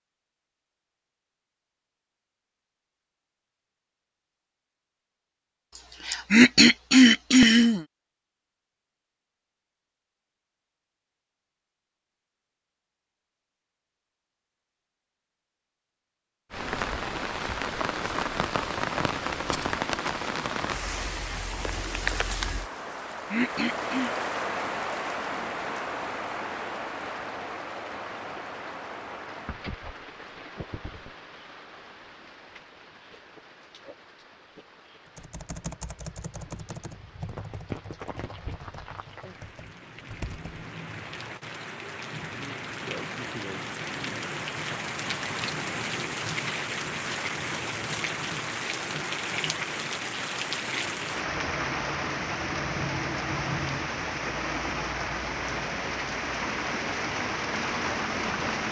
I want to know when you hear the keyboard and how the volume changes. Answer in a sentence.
You can hear the keyboard from 35.1 to 40.5 s, getting quieter.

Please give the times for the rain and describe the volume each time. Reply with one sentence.
The rain can be heard from 16.5 to 58.6 s, getting quieter then louder.